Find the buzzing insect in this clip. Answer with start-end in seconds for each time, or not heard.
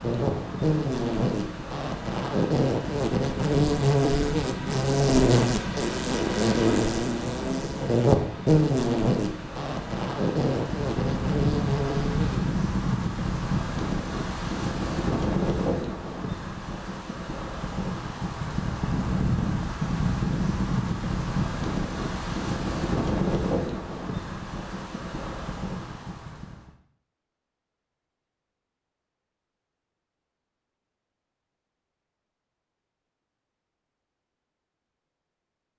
0.0-12.6.